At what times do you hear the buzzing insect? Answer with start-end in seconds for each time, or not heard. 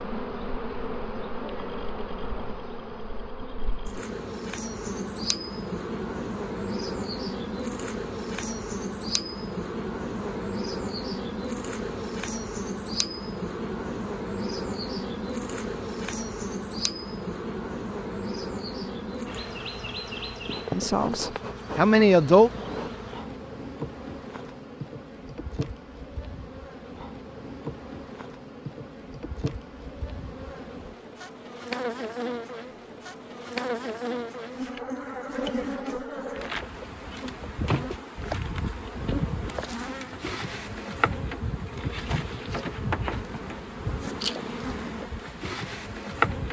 0.0-46.4.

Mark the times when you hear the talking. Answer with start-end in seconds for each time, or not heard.
20.7-22.5.